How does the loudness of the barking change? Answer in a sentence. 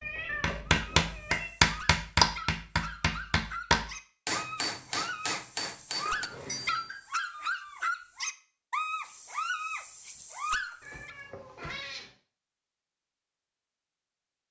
The volume of the barking goes up.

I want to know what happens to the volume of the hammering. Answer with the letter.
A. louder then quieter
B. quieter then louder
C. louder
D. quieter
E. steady
D.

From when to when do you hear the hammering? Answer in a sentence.
The hammering can be heard from 0.4 to 7.0 s.